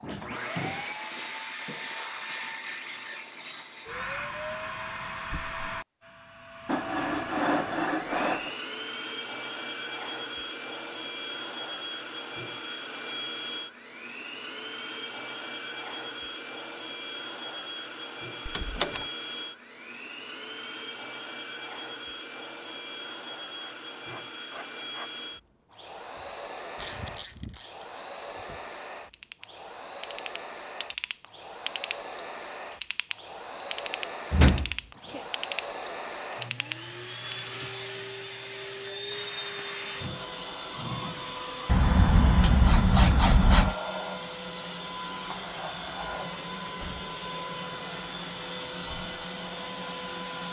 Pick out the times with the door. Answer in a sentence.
The door can be heard from 0.0 to 0.8 s, from 18.4 to 19.1 s and from 34.3 to 35.2 s.